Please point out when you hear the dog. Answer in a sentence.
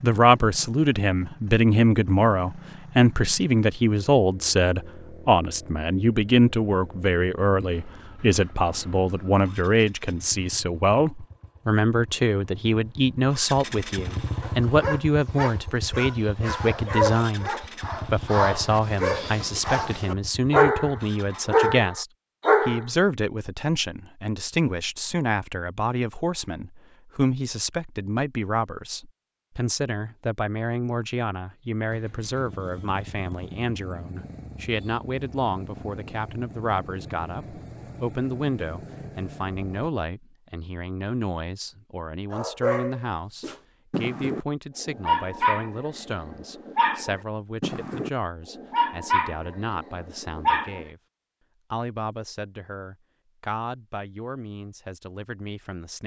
You can hear the dog from 14.4 to 22.9 s and from 42.3 to 50.9 s.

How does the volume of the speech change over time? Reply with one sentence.
The volume of the speech goes down.